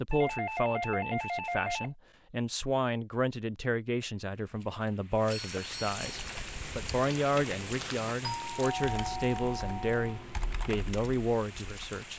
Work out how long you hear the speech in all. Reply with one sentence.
The speech can be heard for 12 seconds in total.